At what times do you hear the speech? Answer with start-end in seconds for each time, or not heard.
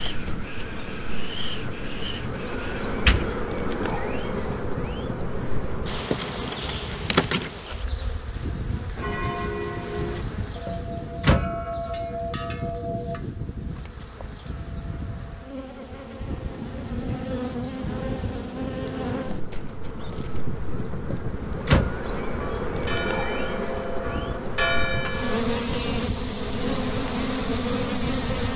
not heard.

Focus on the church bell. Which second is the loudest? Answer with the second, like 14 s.
25 s.